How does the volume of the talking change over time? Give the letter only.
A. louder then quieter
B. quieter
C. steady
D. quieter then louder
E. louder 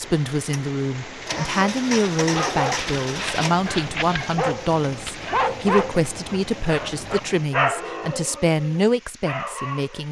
C.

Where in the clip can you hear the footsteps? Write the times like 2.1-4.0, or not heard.
not heard.